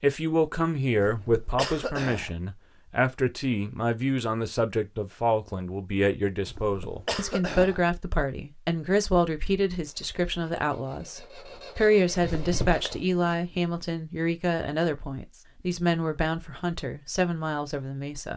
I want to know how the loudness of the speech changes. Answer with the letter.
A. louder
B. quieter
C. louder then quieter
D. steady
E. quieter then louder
D.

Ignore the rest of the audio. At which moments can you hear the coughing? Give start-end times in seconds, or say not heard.
0.9-2.3, 6.5-7.8, 12.2-12.9.